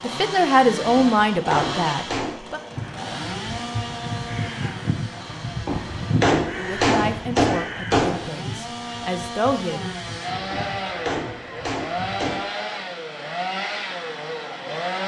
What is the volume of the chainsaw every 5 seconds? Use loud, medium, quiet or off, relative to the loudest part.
loud, medium, loud.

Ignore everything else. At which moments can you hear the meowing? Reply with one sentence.
The meowing can't be heard in this clip.